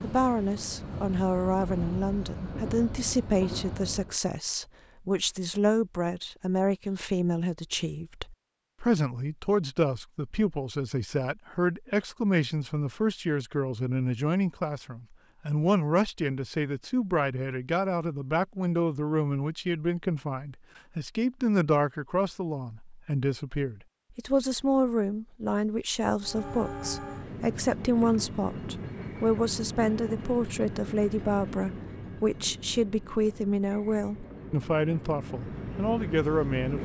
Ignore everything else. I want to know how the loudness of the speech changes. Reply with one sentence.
The loudness of the speech stays about the same.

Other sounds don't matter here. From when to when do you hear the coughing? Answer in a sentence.
The coughing can't be heard in this clip.